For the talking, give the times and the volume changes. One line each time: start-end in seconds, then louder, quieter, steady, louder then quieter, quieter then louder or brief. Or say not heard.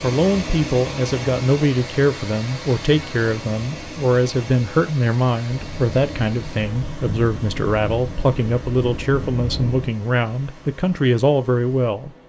0.0-12.1 steady.